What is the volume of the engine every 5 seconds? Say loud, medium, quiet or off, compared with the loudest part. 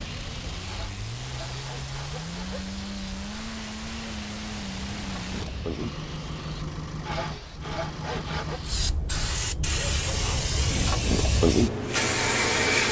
loud, loud, off.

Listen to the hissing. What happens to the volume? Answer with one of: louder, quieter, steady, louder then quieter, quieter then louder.
louder.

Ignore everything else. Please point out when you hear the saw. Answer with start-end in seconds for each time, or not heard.
0.7-2.7, 7.0-8.6.